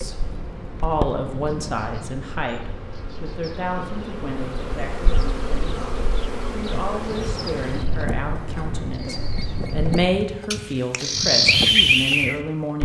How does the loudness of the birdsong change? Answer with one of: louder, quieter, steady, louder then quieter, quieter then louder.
quieter then louder.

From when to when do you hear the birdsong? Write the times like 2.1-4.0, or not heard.
0.0-12.8.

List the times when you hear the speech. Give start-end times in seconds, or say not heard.
0.0-12.8.